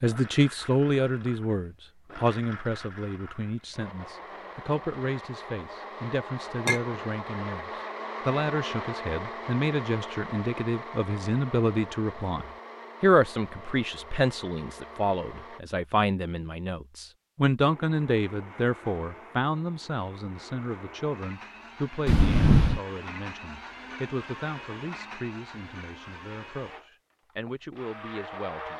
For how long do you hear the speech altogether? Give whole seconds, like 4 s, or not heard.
29 s.